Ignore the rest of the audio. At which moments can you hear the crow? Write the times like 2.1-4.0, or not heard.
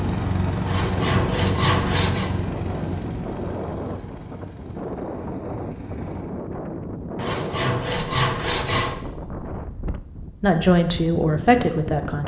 not heard.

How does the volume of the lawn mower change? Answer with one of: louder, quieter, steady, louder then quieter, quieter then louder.
quieter.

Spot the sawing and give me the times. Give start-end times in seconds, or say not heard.
0.7-2.3, 7.2-9.0.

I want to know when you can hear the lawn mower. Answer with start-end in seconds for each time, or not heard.
0.0-6.4.